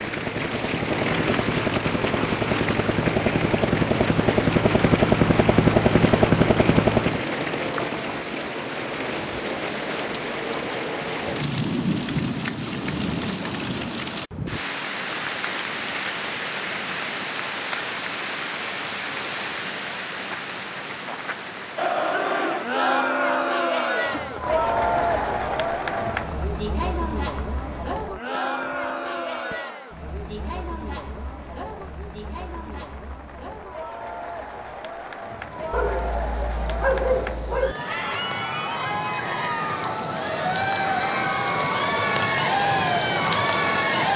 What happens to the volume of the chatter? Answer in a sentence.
The loudness of the chatter goes down, then up.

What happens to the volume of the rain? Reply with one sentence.
The loudness of the rain goes down, then up.